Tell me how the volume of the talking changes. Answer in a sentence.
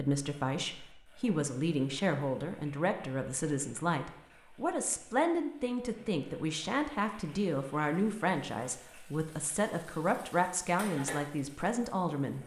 The loudness of the talking stays about the same.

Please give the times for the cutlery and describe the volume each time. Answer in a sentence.
The cutlery can't be heard in this clip.